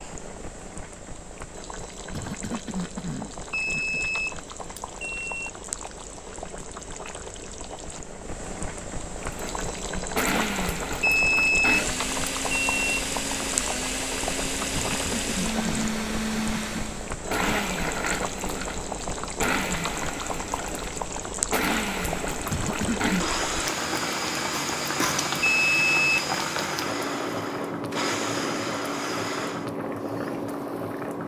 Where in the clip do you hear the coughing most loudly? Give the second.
23 s.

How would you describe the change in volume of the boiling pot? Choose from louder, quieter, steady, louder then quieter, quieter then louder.
louder.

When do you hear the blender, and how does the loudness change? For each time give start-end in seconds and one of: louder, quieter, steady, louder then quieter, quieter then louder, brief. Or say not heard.
9.2-29.7 steady.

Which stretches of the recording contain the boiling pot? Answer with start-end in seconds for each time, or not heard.
0.0-31.2.